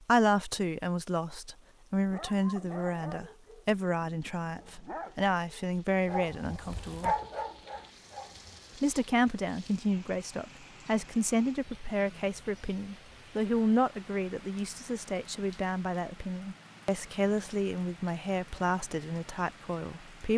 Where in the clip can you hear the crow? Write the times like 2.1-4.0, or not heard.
not heard.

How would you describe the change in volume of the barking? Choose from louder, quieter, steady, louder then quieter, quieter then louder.
quieter then louder.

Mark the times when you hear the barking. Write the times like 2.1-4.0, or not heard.
2.0-8.6.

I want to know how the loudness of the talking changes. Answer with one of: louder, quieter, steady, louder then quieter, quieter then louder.
steady.